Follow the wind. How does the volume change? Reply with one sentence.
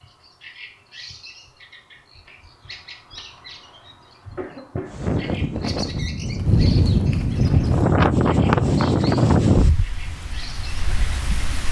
The volume of the wind goes up, then down.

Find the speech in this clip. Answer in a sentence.
You can't hear the speech here.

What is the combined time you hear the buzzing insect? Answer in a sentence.
You can't hear the buzzing insect here.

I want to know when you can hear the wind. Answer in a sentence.
The wind can be heard from 4.8 to 11.6 s.